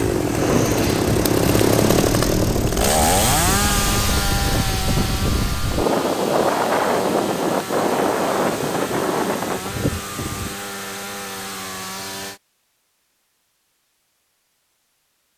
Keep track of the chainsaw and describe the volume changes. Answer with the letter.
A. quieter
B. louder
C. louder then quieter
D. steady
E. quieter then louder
A.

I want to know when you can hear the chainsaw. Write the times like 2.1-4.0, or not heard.
0.0-12.4.